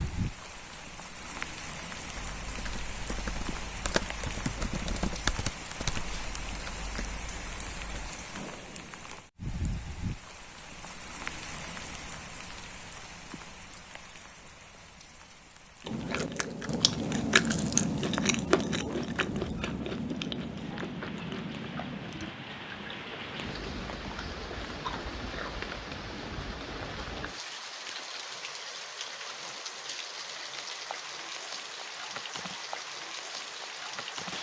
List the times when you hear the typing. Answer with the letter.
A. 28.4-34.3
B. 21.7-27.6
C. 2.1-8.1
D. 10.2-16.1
C.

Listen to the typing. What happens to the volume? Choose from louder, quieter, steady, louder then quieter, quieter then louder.
louder then quieter.